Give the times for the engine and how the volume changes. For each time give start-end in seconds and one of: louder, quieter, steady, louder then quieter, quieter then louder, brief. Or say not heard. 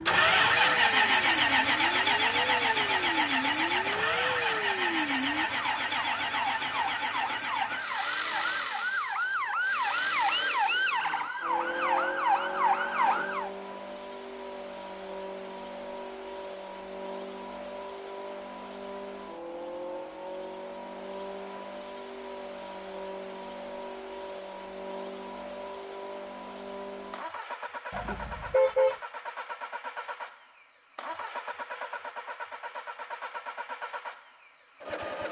0.1-35.2 quieter.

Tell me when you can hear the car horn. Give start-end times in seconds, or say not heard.
27.9-28.9.